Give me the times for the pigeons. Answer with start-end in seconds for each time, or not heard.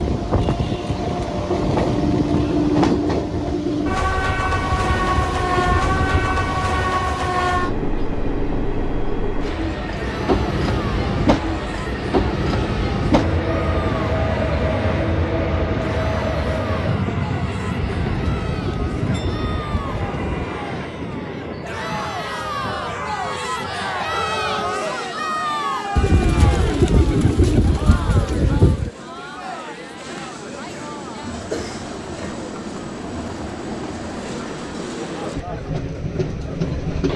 4.7-6.4, 17.8-20.5, 25.9-28.9.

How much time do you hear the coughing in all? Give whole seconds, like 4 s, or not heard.
2 s.